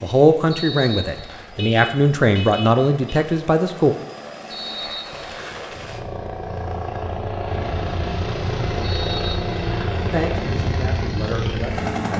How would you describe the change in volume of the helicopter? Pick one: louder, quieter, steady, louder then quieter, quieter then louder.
louder.